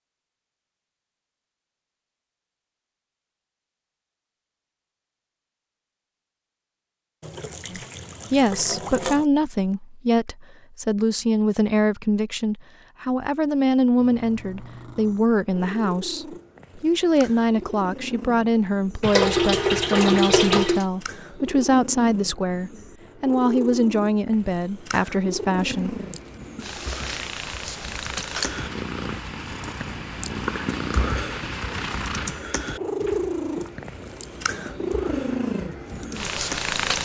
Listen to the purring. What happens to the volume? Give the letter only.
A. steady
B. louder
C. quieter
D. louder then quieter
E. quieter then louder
B.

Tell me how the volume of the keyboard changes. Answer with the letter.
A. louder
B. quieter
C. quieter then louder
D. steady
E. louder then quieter
E.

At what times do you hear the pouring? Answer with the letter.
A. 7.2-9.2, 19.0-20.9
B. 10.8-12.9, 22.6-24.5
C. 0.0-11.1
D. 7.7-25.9
A.